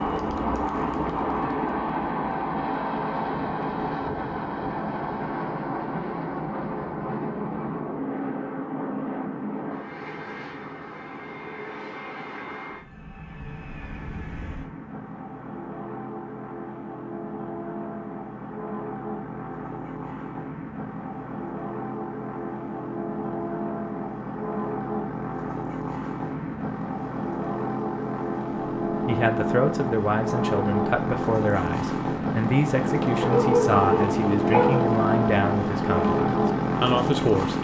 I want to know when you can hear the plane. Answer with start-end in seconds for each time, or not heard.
0.0-37.6.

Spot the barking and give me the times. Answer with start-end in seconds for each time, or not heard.
33.2-34.9.